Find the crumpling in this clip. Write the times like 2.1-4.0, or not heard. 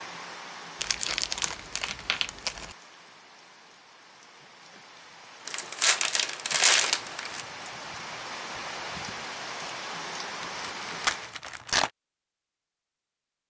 0.8-2.6, 5.5-7.4, 10.4-11.9.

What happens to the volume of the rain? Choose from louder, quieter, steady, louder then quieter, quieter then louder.
quieter then louder.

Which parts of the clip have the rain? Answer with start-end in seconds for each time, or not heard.
0.0-11.4.